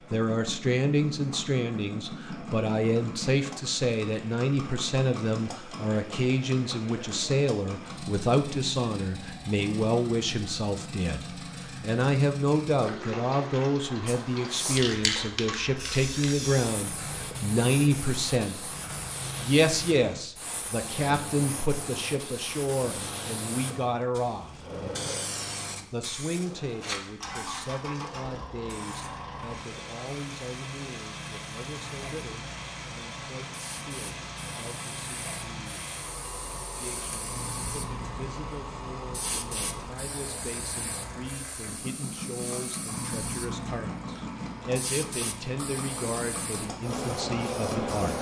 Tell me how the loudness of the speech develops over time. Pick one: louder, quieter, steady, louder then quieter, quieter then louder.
quieter then louder.